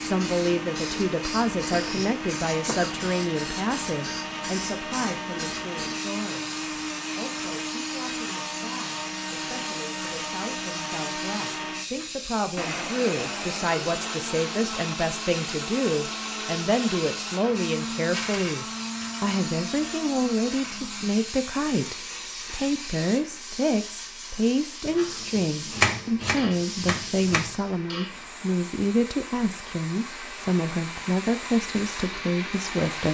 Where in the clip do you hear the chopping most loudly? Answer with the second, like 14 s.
26 s.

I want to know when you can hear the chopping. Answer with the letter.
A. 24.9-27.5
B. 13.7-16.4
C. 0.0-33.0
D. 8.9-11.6
A.